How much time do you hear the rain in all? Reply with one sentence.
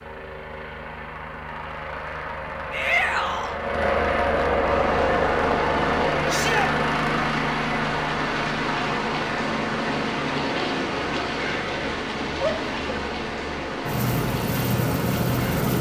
You can hear the rain for 11 seconds altogether.